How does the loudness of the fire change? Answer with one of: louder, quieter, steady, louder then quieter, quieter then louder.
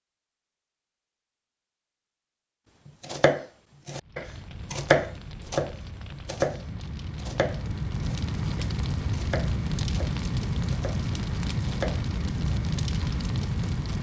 louder.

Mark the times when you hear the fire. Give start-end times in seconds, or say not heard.
4.0-13.9.